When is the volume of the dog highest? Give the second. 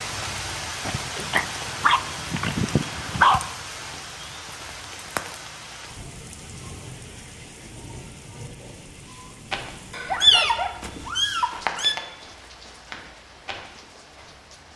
3 s.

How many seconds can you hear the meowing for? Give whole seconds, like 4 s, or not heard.
2 s.